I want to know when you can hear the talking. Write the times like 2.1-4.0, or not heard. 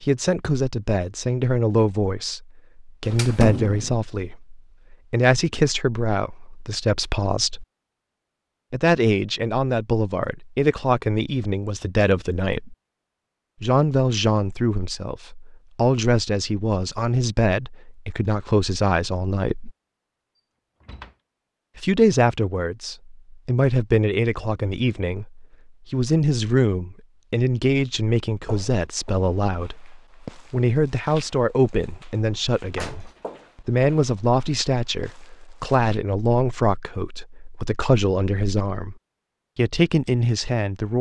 0.0-7.7, 8.7-12.8, 13.6-19.7, 21.8-39.0, 39.5-40.9.